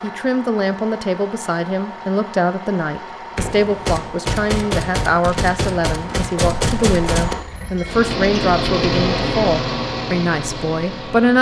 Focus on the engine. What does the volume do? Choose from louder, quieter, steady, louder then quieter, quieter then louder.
louder.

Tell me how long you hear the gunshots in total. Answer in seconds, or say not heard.
4 s.